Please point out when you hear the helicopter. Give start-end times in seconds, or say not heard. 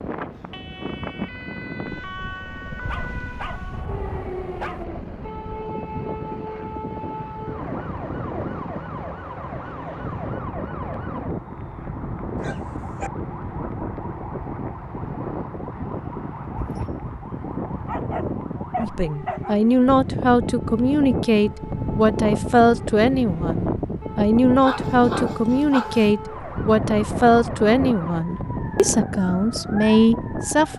0.1-10.3.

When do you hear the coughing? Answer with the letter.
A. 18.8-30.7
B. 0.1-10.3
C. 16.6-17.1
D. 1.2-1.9
C.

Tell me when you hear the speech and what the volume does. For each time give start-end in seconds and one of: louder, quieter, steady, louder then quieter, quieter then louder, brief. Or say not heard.
18.8-30.7 steady.